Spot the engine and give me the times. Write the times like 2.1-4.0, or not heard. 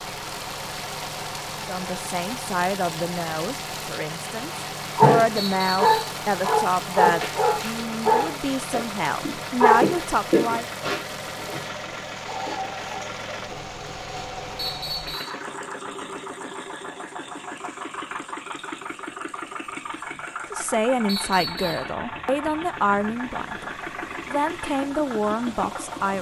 0.0-26.1.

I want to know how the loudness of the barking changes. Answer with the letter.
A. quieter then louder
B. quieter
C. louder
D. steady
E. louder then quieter
B.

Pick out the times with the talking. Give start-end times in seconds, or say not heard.
1.6-10.7, 20.5-26.1.